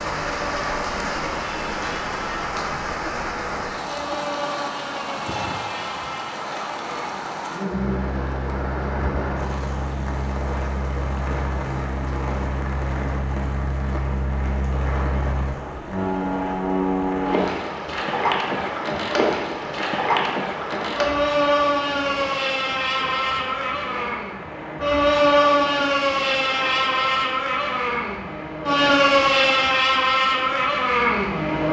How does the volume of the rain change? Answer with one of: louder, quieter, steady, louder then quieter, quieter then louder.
quieter.